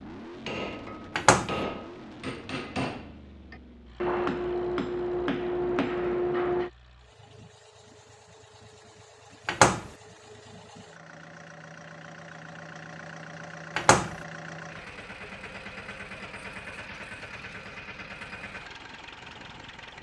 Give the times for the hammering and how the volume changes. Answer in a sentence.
The hammering can be heard from 0.5 to 6.7 s, getting louder.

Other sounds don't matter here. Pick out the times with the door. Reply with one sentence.
You can hear the door from 1.1 to 1.6 s, from 9.4 to 9.9 s and from 13.8 to 14.2 s.